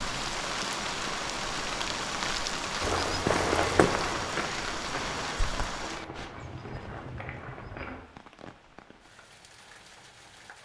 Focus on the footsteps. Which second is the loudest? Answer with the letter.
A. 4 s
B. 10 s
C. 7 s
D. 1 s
A.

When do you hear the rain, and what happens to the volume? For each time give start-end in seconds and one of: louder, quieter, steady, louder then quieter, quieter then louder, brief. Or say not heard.
0.0-10.6 quieter.